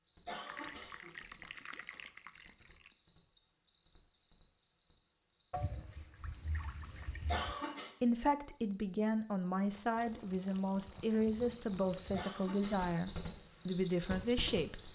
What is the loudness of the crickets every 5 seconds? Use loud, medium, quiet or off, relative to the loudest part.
quiet, quiet, loud.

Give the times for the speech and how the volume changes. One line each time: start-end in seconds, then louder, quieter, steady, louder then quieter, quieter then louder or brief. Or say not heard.
8.0-14.8 steady.